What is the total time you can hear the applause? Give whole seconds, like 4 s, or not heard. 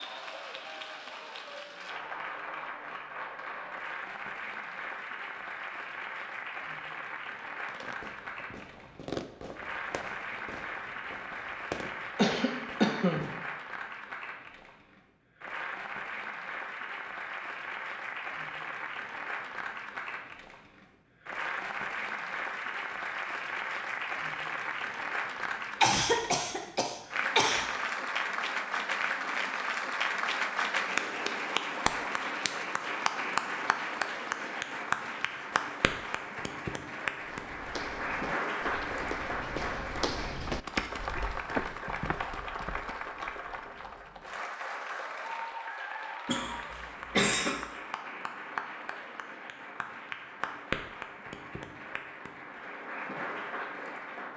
54 s.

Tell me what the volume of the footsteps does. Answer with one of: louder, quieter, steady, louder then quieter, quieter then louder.
louder.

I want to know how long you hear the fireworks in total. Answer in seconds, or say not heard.
6 s.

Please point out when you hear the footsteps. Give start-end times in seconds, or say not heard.
37.2-42.8.